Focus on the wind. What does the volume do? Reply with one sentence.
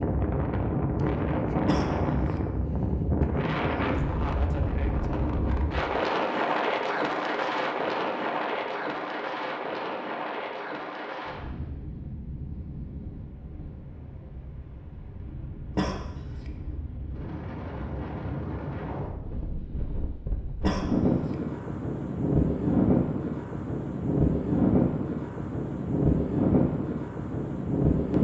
The loudness of the wind goes down, then up.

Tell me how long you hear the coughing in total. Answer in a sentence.
You can hear the coughing for 2 seconds altogether.